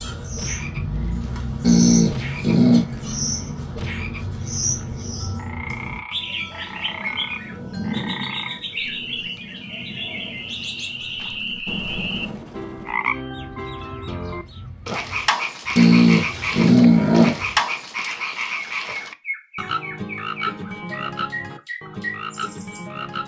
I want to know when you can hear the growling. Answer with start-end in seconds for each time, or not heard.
1.6-2.9, 15.8-17.4.